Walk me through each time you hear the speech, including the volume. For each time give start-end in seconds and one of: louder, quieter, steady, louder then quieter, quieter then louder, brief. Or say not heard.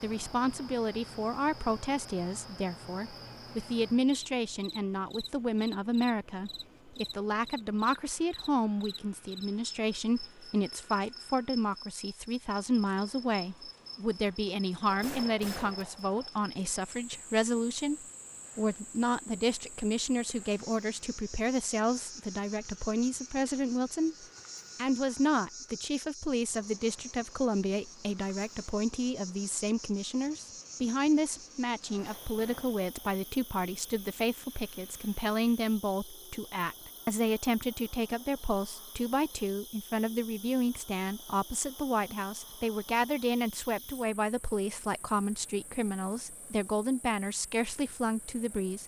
0.0-48.8 steady.